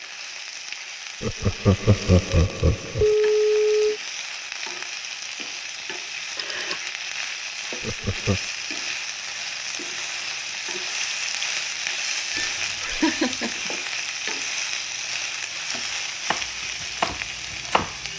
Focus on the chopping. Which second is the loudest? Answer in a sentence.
The loudest moment of the chopping is at 17 seconds.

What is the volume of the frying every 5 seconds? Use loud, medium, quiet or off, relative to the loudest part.
medium, loud, loud, loud.